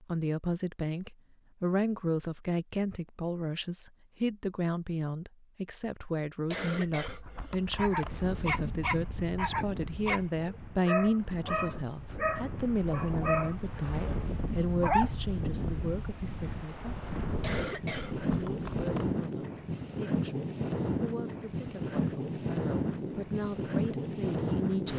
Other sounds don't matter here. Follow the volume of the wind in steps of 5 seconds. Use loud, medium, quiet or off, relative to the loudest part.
off, medium, medium, loud, loud.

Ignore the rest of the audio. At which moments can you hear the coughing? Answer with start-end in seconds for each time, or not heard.
6.5-8.2, 17.4-19.2.